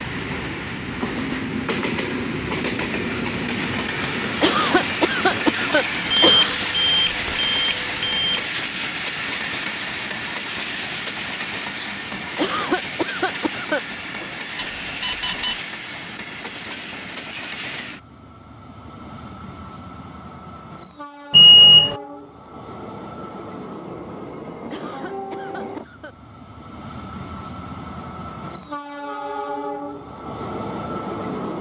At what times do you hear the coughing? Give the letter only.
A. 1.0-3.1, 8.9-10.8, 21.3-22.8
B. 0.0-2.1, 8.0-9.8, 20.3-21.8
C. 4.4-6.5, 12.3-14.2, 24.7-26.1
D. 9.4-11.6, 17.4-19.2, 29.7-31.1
C.